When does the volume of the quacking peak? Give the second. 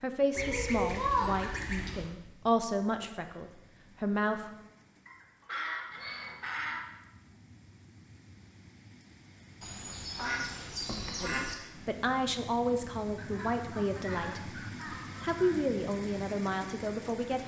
1 s.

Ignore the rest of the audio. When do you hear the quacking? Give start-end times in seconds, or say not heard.
0.3-2.1, 5.0-6.8, 9.6-11.6, 13.2-15.6.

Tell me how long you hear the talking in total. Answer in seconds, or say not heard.
10 s.